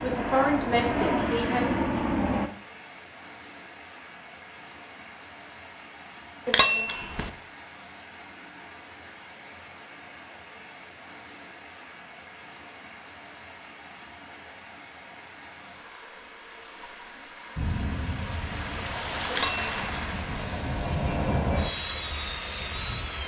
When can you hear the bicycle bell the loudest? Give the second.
7 s.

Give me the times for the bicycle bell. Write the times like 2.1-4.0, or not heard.
6.5-7.3, 19.3-20.1.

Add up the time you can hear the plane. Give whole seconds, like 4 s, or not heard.
8 s.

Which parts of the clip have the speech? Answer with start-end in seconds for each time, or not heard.
0.0-1.9.